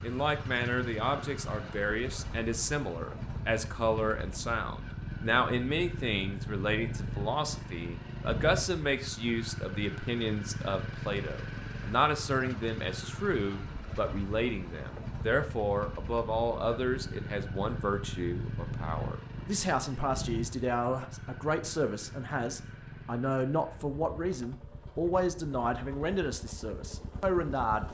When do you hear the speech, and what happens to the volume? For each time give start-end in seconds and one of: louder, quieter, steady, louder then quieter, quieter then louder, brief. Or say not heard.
0.0-27.9 steady.